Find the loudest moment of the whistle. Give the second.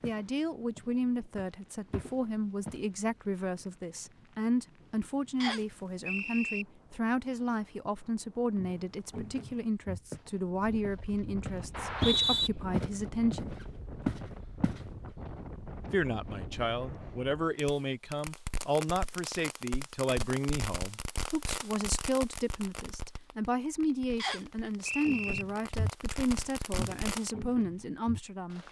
12 s.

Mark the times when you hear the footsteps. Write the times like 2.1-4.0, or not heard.
0.0-2.8, 8.6-14.8, 25.1-28.6.